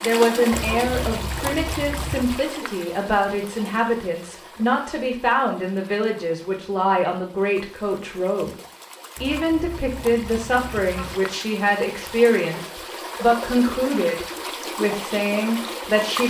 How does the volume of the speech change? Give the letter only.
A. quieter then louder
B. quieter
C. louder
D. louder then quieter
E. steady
E.